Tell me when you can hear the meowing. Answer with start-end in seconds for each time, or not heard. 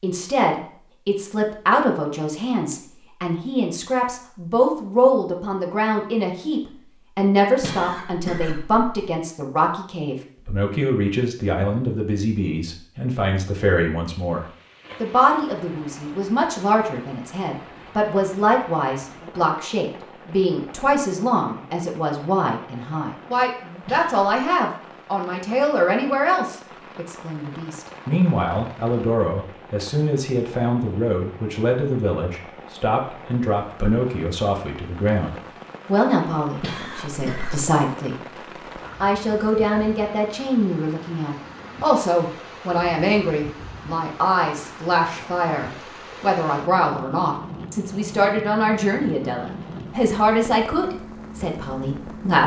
not heard.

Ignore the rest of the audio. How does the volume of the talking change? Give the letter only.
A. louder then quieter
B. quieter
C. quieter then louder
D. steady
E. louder
D.